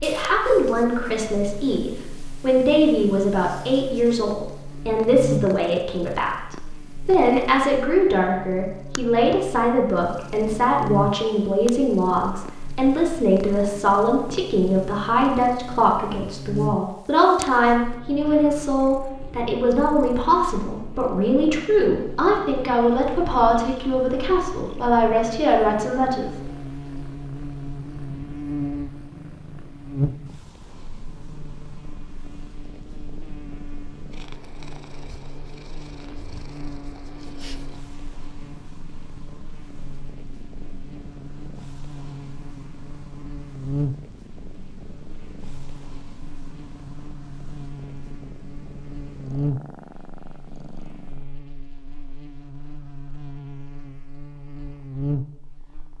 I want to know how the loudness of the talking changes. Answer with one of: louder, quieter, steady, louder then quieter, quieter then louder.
steady.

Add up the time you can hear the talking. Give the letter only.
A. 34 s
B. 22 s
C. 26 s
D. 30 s
C.